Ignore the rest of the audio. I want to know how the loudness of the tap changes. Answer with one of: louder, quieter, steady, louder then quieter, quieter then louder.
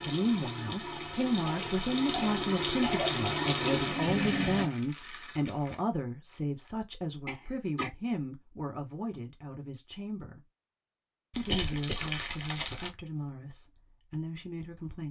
louder.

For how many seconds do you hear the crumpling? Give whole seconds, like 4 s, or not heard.
3 s.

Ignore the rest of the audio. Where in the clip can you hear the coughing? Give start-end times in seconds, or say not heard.
1.4-3.2, 7.2-7.9, 11.4-12.2.